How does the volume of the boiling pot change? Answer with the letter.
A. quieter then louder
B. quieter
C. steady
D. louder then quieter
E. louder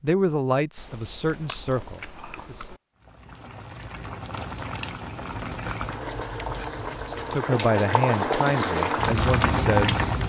E.